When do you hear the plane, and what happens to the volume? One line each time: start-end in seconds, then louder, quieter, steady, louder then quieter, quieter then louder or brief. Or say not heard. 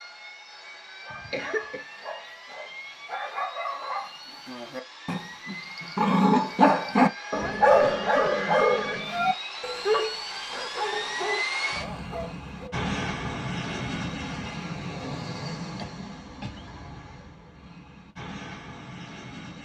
0.0-19.5 louder then quieter.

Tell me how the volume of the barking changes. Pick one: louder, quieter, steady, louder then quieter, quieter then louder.
louder then quieter.